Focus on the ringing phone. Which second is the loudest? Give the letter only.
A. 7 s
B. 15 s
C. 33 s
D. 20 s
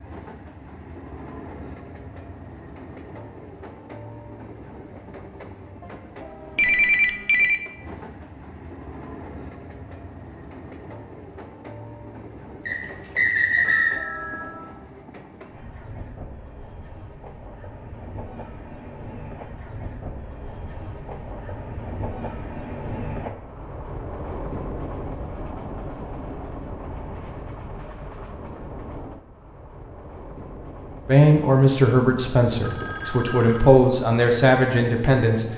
A.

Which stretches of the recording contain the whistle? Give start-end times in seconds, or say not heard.
12.7-14.0.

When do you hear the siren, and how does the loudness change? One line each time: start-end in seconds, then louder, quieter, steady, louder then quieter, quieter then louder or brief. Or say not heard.
not heard.